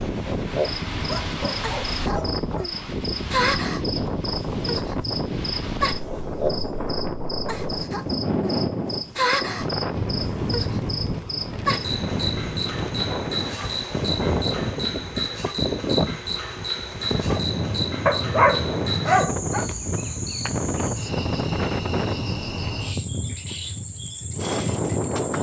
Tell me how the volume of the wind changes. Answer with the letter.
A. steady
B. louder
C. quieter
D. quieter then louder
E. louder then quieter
A.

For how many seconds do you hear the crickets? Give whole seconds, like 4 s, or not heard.
25 s.